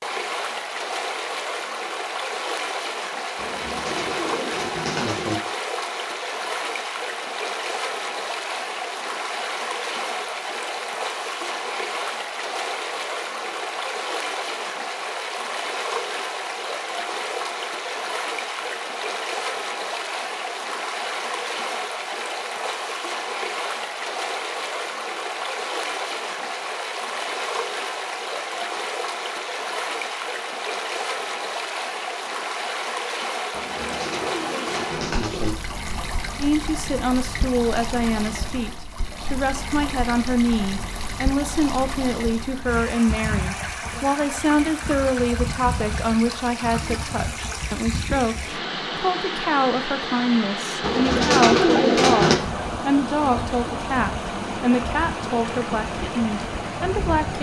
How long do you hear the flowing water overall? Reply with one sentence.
The flowing water can be heard for 57 seconds in total.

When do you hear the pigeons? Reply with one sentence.
You can hear the pigeons from 3.4 to 5.4 s, from 33.5 to 35.5 s and from 50.8 to 52.4 s.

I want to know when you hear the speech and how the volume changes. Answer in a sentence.
You can hear the speech from 36.4 to 57.3 s, at a steady volume.